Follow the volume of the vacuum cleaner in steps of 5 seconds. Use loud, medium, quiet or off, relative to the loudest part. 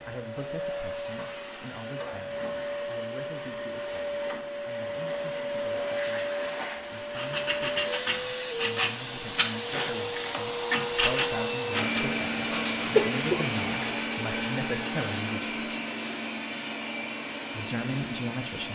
medium, loud, loud, medium.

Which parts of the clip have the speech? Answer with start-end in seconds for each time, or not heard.
0.1-15.6, 17.5-18.7.